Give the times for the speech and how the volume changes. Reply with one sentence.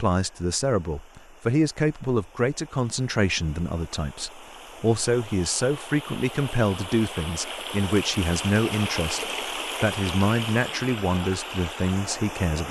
You can hear the speech from 0.0 to 12.6 s, at a steady volume.